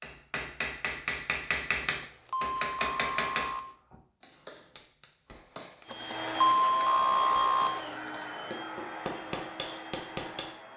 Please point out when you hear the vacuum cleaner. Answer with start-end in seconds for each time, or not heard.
5.8-10.7.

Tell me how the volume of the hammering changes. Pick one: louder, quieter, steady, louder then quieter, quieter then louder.
quieter then louder.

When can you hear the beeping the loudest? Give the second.
7 s.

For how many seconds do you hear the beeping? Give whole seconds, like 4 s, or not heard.
4 s.